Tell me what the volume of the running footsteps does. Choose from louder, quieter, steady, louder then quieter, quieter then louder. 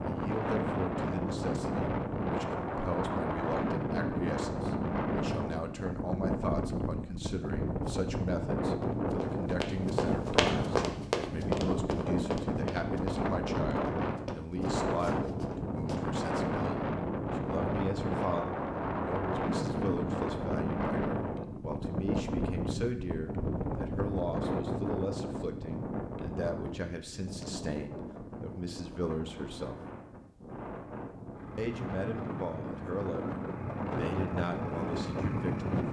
quieter.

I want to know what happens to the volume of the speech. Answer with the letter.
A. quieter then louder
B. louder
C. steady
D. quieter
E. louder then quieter
C.